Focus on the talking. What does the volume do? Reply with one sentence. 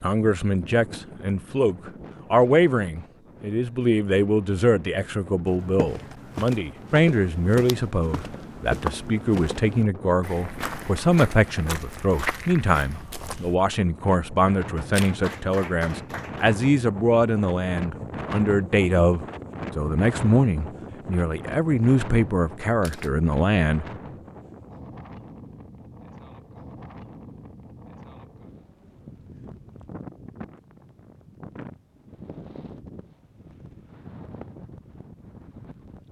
The loudness of the talking stays about the same.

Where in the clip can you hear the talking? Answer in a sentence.
The talking can be heard from 0.0 to 23.9 s.